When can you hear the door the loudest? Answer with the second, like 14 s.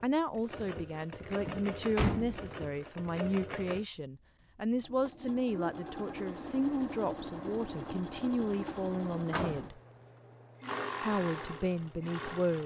2 s.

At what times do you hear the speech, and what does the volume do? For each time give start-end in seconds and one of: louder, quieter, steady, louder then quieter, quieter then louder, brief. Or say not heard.
0.0-9.8 steady
11.0-12.6 brief.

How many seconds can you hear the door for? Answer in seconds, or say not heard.
2 s.